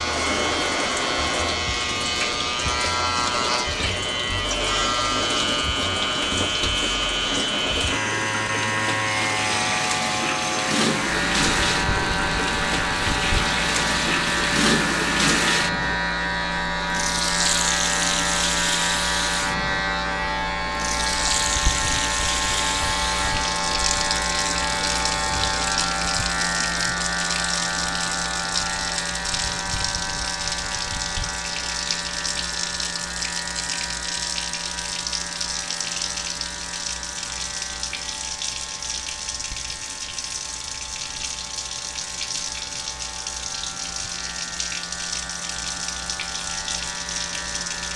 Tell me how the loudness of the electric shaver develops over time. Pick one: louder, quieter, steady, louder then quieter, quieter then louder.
quieter.